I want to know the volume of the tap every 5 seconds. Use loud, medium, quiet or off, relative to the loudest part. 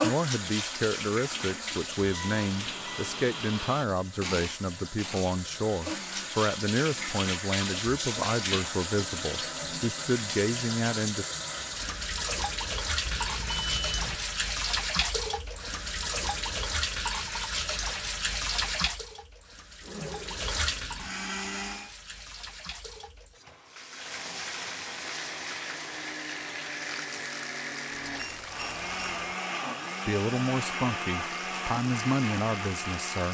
loud, loud, loud, loud, medium, medium, medium.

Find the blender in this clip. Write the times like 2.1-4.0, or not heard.
0.2-7.2, 19.8-21.9, 25.1-33.2.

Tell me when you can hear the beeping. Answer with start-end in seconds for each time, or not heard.
2.1-3.3, 13.1-14.2, 28.1-29.3.